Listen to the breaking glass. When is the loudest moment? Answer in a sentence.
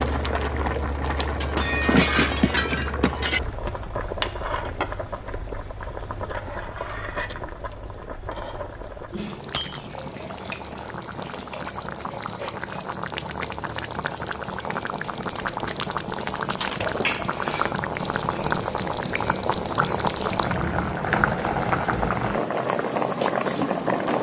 The loudest moment of the breaking glass is at 2 seconds.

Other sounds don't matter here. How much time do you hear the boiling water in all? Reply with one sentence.
The boiling water can be heard for 24 seconds in total.